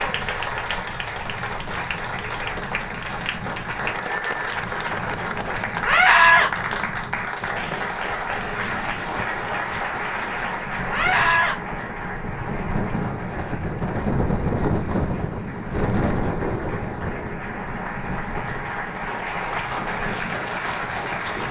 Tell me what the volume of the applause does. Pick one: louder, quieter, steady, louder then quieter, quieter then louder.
quieter then louder.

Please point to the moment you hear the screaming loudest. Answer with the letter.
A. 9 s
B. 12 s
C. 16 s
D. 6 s
D.